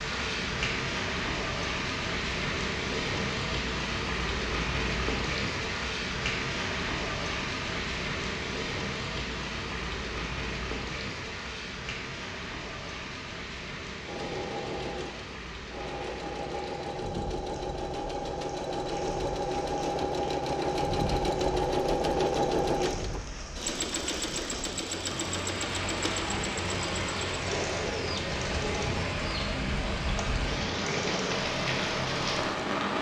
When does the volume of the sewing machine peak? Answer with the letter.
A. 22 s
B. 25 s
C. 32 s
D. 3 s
A.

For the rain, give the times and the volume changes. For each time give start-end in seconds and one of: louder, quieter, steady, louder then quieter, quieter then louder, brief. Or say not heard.
0.0-32.9 quieter then louder.